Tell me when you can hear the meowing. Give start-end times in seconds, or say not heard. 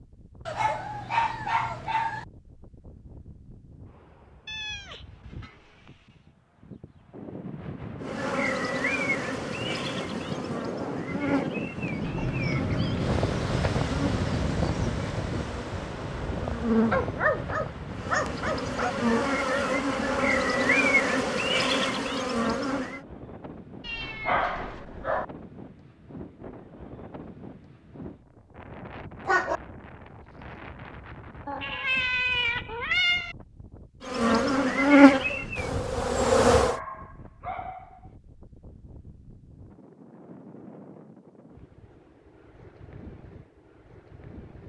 4.5-5.9, 23.9-25.2, 31.4-33.4.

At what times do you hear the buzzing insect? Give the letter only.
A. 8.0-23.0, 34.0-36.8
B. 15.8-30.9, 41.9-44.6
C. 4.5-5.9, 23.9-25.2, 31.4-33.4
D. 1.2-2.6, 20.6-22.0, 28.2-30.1
A.